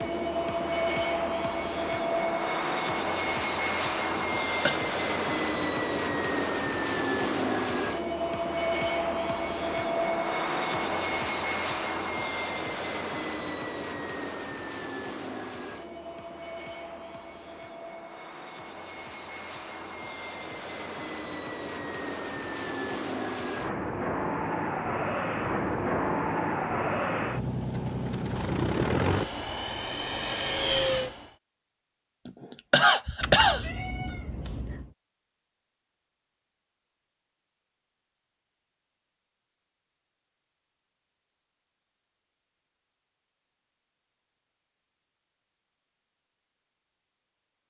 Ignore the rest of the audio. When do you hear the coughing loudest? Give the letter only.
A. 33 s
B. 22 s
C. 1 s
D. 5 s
A.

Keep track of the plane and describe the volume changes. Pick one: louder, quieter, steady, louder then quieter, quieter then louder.
quieter then louder.